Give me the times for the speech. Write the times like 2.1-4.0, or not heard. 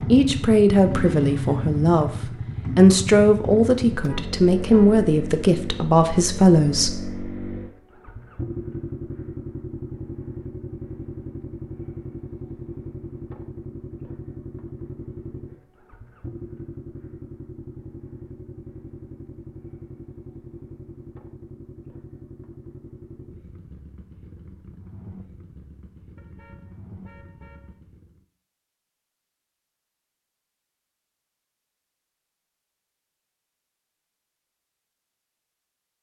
0.1-7.0.